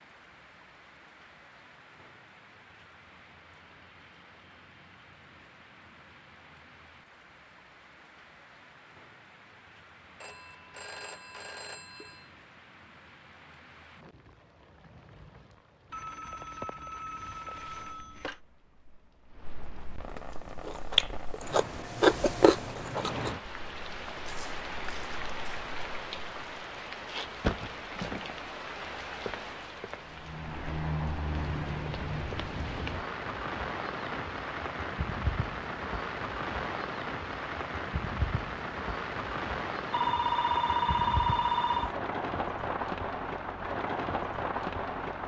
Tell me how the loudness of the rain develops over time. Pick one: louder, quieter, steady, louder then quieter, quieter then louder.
louder.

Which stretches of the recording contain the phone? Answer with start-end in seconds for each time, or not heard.
10.2-12.2, 15.9-18.4, 39.9-42.0.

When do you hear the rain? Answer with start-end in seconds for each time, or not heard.
0.0-45.2.